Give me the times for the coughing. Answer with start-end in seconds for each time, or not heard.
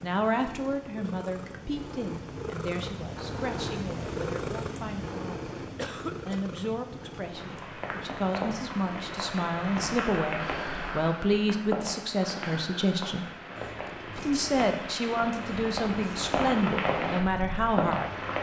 5.8-6.4.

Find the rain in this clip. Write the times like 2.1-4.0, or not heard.
7.3-18.3.